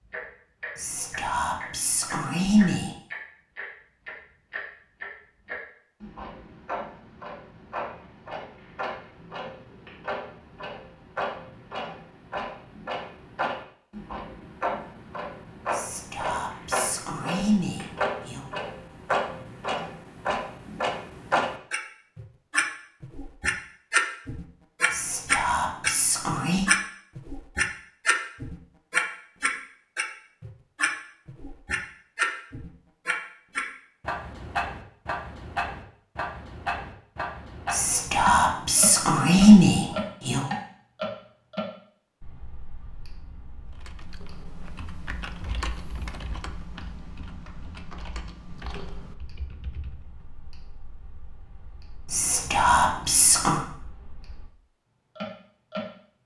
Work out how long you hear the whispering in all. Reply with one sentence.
The whispering can be heard for 11 seconds in total.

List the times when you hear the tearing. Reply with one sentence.
You can't hear the tearing here.